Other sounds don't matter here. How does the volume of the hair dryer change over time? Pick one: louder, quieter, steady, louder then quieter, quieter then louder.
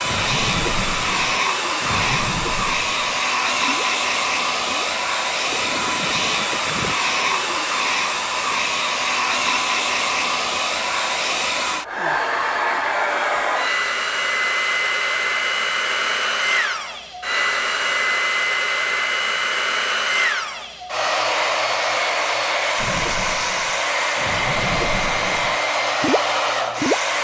steady.